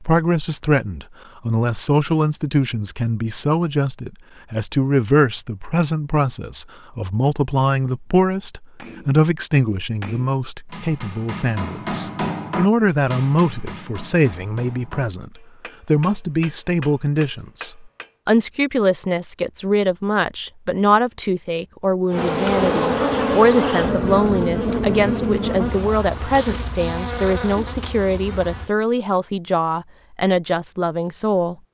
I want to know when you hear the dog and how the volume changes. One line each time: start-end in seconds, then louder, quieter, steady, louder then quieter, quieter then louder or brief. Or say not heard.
not heard.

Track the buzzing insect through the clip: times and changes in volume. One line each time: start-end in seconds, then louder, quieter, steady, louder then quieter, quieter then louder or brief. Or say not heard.
22.1-28.7 quieter.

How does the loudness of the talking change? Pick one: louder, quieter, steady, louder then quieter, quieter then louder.
steady.